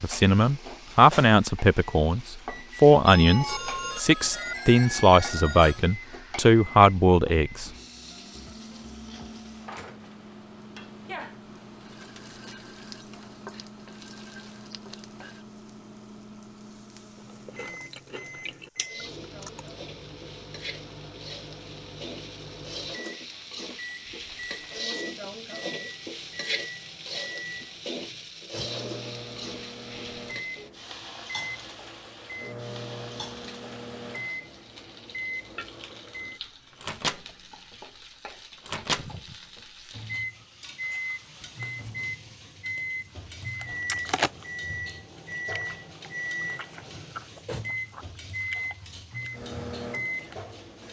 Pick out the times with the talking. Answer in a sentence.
You can hear the talking from 0.0 to 7.7 s.